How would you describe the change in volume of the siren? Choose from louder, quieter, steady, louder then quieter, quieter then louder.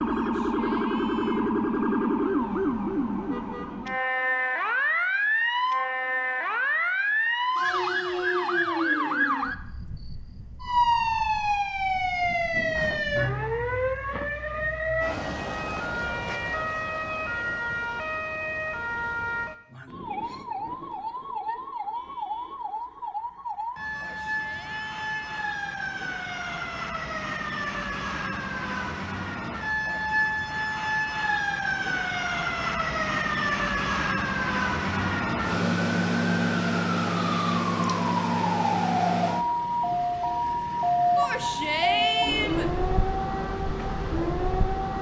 quieter then louder.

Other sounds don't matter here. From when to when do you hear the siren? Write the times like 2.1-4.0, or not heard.
0.0-44.9.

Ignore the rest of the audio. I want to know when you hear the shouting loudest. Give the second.
42 s.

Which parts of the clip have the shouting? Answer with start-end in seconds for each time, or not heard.
0.1-1.5, 23.9-25.2, 41.1-42.7.